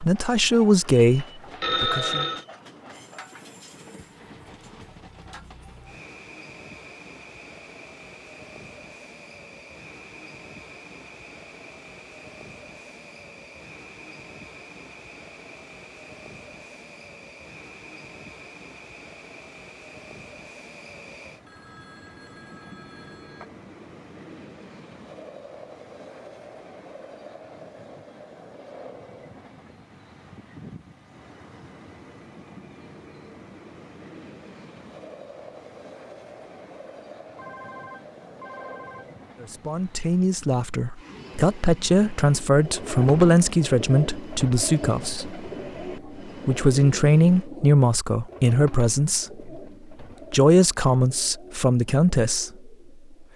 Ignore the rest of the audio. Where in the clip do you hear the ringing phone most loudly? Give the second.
2 s.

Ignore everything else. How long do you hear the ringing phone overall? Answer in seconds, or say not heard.
5 s.